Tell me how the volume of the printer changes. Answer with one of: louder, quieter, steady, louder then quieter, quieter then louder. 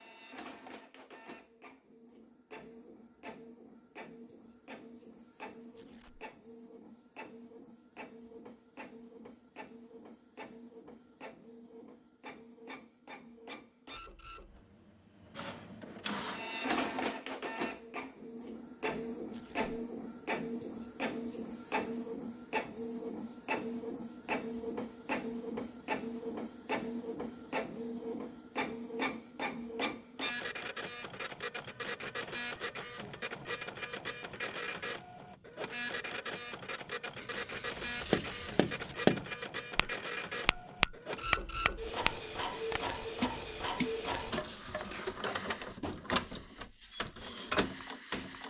louder.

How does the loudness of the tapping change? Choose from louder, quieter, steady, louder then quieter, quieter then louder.
quieter.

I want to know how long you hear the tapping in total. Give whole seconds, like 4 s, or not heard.
8 s.